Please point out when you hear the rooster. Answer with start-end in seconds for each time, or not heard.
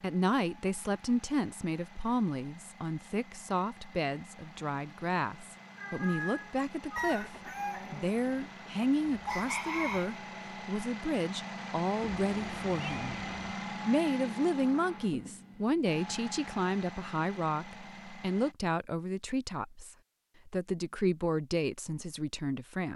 7.0-10.2.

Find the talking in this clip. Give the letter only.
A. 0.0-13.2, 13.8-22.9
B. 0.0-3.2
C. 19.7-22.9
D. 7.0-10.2
A.